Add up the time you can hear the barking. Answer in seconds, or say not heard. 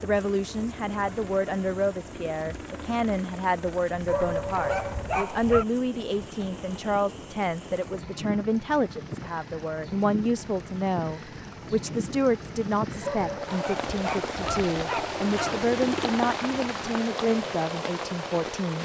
4 s.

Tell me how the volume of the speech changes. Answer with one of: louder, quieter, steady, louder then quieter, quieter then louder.
steady.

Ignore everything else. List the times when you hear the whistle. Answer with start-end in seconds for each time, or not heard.
not heard.